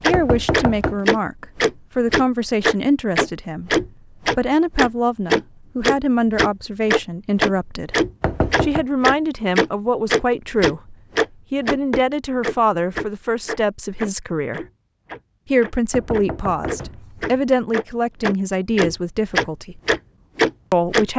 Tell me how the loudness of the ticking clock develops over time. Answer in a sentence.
The loudness of the ticking clock goes down, then up.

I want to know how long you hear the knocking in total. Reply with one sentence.
You can hear the knocking for 3 seconds altogether.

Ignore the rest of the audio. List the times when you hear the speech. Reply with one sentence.
You can hear the speech from 0.0 to 8.0 s, from 8.6 to 14.6 s, from 15.5 to 19.8 s and from 20.7 to 21.1 s.